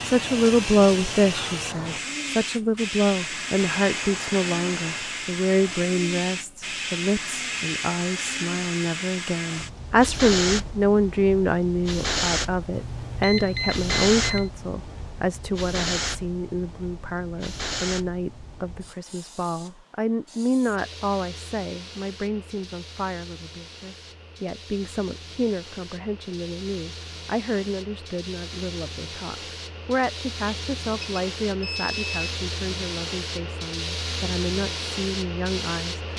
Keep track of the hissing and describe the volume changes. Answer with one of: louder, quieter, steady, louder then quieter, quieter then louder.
quieter then louder.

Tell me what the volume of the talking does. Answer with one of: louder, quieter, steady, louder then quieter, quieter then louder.
quieter.